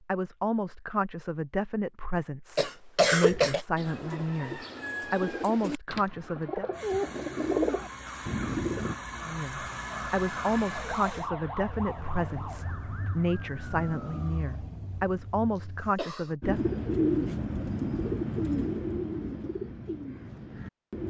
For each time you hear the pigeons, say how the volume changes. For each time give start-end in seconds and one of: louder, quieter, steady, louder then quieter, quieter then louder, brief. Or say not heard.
3.2-8.9 louder
16.4-21.0 quieter.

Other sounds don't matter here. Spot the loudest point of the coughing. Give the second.
3 s.